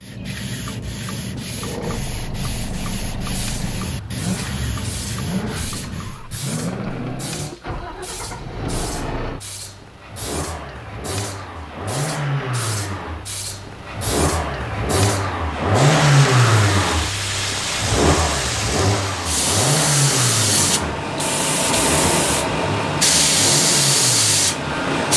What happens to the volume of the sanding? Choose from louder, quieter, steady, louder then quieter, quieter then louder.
steady.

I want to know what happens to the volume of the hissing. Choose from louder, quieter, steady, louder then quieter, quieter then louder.
louder.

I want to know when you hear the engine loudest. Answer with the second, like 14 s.
16 s.